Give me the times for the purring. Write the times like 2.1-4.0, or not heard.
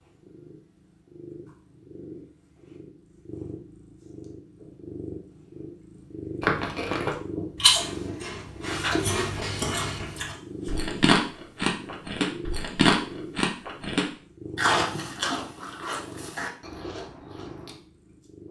0.0-18.4.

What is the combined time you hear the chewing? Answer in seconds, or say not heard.
11 s.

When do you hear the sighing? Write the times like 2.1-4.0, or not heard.
not heard.